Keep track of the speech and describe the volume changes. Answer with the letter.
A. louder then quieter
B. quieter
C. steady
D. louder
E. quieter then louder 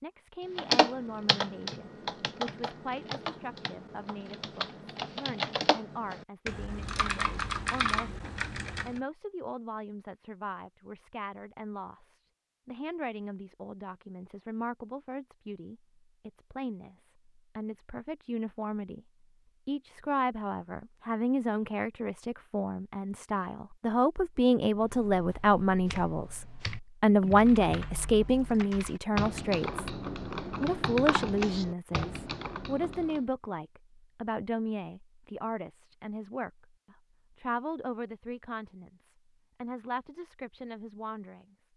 A.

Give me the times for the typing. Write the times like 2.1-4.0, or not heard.
0.6-9.0, 24.7-33.2.